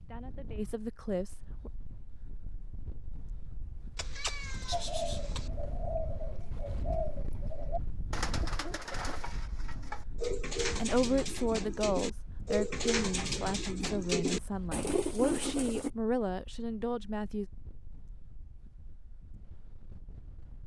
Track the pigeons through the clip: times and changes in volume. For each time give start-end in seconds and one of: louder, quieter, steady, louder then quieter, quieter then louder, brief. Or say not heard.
4.7-15.9 louder.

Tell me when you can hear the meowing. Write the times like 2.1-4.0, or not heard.
4.0-5.5.